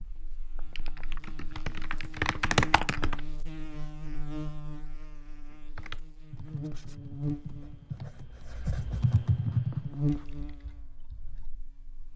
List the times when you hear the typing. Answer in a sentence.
You can hear the typing from 0.0 to 3.2 s and from 5.5 to 11.5 s.